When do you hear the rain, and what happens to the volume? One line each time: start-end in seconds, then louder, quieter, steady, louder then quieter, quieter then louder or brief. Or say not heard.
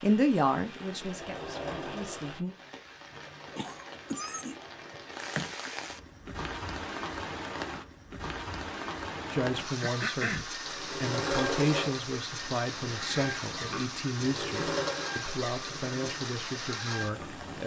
0.0-17.6 louder.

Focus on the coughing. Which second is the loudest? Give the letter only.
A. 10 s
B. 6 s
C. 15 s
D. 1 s
A.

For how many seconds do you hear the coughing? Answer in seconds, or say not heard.
3 s.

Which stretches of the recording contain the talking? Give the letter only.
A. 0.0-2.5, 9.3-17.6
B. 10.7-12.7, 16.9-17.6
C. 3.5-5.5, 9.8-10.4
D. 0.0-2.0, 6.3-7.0
A.